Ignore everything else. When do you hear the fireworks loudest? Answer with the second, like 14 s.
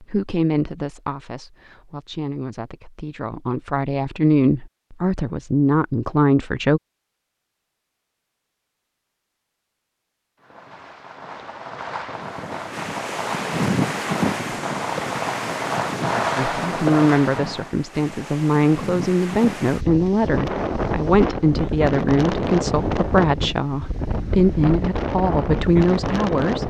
16 s.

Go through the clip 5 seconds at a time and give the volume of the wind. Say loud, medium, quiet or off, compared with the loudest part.
off, off, loud, medium, loud, loud.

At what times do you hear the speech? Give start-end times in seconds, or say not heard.
0.0-6.8, 16.4-26.6.